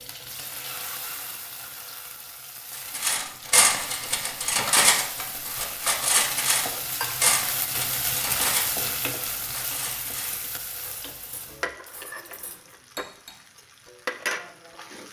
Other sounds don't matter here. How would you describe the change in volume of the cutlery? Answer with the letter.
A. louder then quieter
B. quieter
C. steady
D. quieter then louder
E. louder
B.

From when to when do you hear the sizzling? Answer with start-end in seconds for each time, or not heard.
0.0-15.0.